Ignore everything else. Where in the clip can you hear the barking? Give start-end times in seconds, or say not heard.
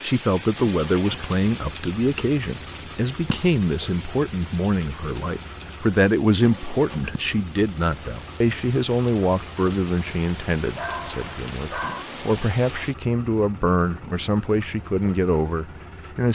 10.8-12.1.